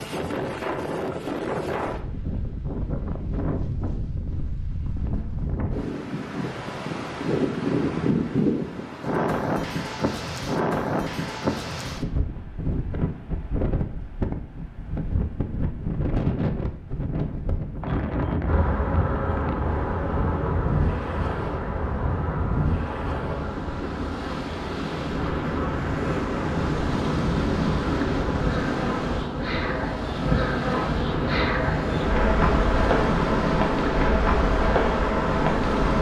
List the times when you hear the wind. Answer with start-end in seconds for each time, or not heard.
0.0-35.9.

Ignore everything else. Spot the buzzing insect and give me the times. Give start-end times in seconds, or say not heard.
18.4-35.9.